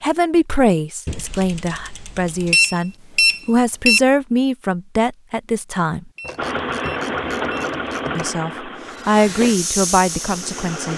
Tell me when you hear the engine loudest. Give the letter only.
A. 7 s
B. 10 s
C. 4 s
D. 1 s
A.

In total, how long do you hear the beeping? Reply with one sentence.
You can hear the beeping for 3 seconds altogether.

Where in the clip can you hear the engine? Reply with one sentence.
You can hear the engine from 6.3 to 10.9 s.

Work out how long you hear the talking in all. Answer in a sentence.
You can hear the talking for 9 seconds altogether.